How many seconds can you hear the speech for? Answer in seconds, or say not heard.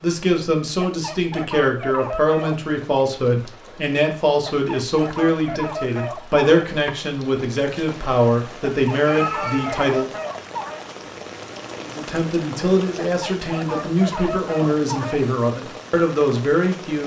15 s.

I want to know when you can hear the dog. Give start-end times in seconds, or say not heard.
0.8-2.5, 4.5-6.7, 8.7-10.9, 13.1-15.2.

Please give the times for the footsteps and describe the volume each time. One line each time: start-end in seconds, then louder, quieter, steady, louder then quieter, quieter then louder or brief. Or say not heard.
not heard.